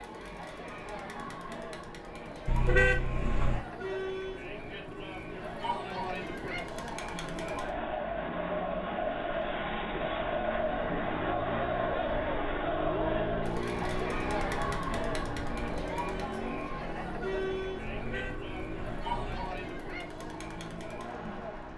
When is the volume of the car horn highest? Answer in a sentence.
The volume of the car horn peaks at 3 seconds.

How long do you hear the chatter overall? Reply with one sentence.
You can hear the chatter for 22 seconds altogether.